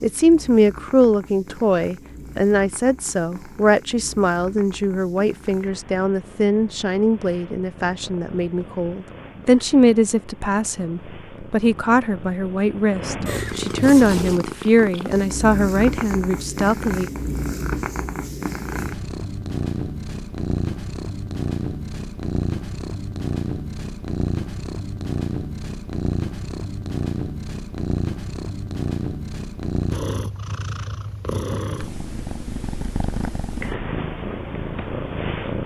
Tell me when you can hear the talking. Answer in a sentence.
The talking can be heard from 0.0 to 17.1 s.